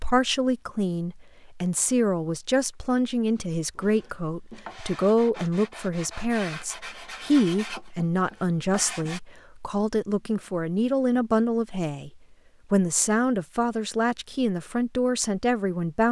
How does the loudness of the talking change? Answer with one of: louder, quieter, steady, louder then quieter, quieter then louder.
steady.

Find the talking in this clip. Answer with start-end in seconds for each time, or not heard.
0.0-12.1, 12.7-16.0.